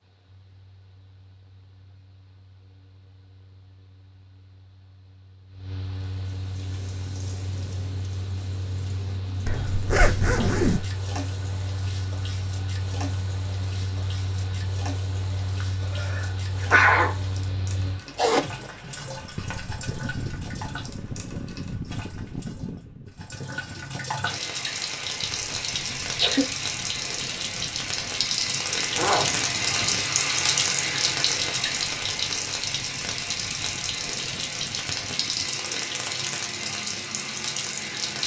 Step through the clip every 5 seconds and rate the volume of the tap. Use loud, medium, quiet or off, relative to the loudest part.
off, quiet, quiet, quiet, medium, loud, loud, loud.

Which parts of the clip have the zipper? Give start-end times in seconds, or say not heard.
9.4-10.9, 18.1-18.7, 28.9-30.1.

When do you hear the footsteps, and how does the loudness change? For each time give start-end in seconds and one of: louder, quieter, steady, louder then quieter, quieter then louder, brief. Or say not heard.
not heard.